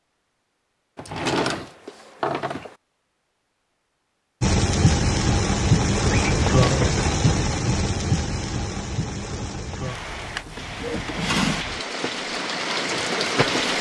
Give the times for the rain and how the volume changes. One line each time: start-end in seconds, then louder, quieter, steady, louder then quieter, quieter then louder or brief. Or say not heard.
4.4-13.7 quieter then louder.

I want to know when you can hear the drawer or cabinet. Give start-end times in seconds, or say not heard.
0.9-2.8, 6.1-6.9, 9.9-11.7.